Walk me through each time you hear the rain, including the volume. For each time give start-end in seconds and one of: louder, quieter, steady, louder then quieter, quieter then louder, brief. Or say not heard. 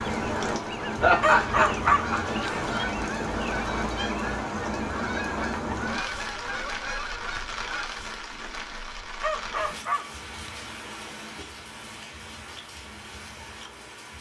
0.0-14.1 quieter.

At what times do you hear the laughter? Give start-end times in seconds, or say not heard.
1.0-2.2.